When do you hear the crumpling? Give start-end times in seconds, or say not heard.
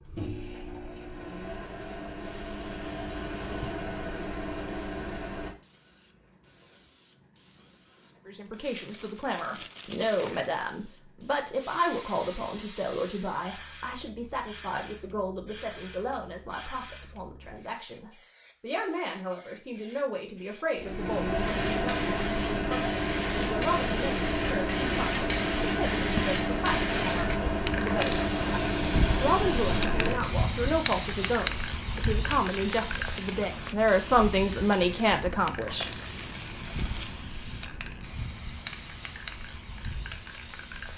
8.4-10.6, 35.9-37.2.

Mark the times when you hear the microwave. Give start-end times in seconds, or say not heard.
0.0-5.5, 20.8-30.2.